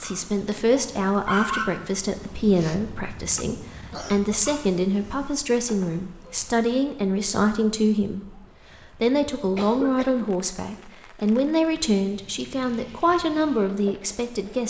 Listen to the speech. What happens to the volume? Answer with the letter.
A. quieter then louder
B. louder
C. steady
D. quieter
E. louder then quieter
C.